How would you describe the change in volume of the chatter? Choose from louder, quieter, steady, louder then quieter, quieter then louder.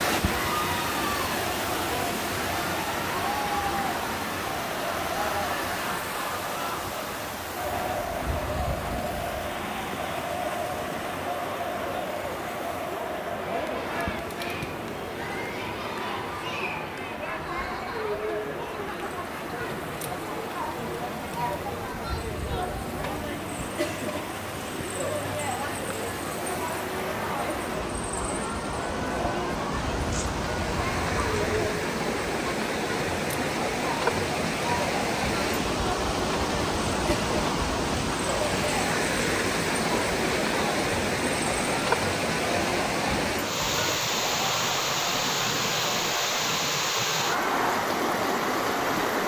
steady.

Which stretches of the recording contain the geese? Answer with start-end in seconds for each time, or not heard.
29.7-31.7.